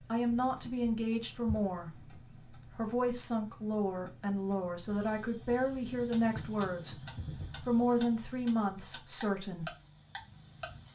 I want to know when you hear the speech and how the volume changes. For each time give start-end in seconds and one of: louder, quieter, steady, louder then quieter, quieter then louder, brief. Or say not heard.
0.1-7.0 quieter then louder
7.6-9.7 brief.